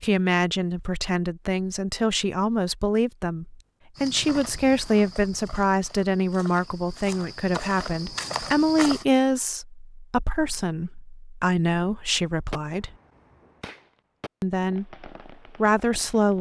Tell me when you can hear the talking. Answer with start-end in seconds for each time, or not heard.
0.0-12.9, 14.4-16.3.